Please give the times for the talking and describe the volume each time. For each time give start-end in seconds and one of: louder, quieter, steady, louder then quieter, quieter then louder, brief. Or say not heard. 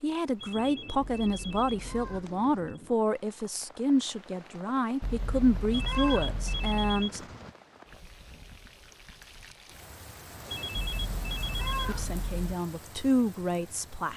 0.0-7.2 steady
11.8-14.1 brief.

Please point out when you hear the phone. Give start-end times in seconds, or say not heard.
0.3-2.8, 5.7-7.5, 10.4-12.2.